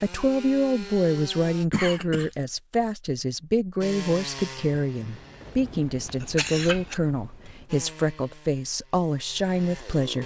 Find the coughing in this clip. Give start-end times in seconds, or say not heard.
1.7-2.4, 6.0-7.0.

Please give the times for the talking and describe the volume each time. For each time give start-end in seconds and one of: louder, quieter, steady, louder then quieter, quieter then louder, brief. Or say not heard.
0.0-10.2 steady.